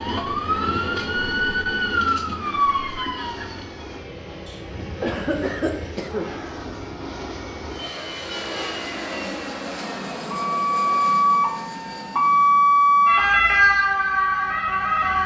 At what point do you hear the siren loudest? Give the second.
13 s.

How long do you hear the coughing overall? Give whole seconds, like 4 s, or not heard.
2 s.